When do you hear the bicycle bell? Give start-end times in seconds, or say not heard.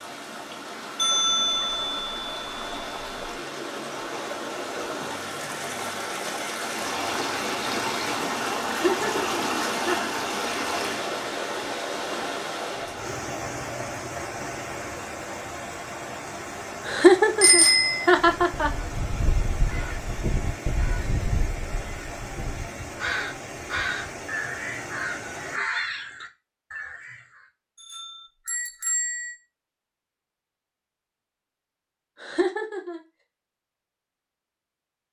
0.9-3.1, 17.4-18.1, 27.8-29.4.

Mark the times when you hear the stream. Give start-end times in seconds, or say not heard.
0.0-25.6.